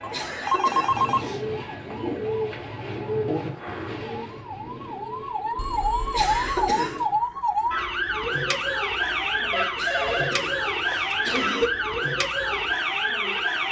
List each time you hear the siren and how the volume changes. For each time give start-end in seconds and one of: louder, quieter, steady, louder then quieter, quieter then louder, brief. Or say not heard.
0.0-13.6 louder.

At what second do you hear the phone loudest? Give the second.
1 s.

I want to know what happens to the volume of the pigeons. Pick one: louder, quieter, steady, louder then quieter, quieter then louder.
quieter.